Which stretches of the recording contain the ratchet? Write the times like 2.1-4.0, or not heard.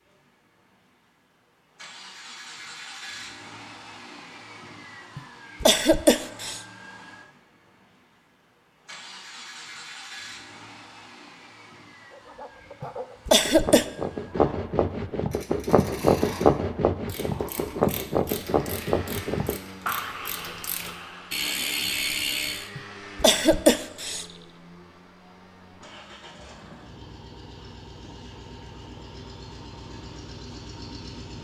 15.3-22.7.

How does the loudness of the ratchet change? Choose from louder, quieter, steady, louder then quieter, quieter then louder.
louder.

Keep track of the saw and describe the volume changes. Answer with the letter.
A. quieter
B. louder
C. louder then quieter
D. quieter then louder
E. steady
C.